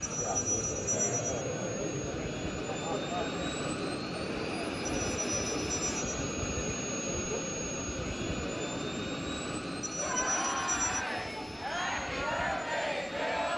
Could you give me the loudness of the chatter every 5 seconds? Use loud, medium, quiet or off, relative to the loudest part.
loud, medium, loud.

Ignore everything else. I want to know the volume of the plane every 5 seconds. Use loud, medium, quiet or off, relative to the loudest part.
loud, loud, medium.